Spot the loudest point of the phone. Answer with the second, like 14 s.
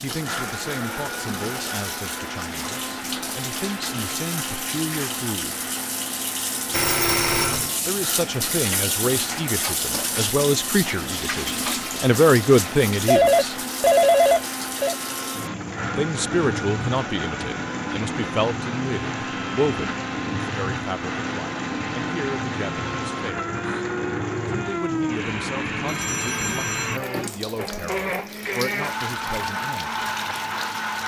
14 s.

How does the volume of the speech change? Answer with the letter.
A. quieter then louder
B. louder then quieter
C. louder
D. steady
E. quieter
B.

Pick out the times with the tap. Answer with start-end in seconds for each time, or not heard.
0.0-31.0.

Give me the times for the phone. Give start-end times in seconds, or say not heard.
6.7-7.7, 13.1-14.9, 25.9-27.0.